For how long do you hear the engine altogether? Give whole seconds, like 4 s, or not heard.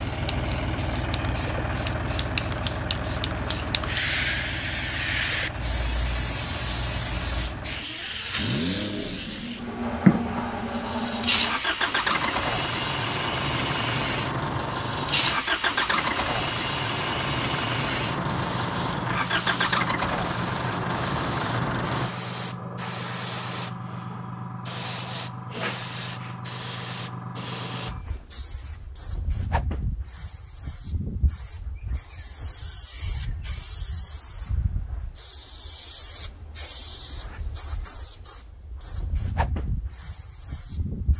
22 s.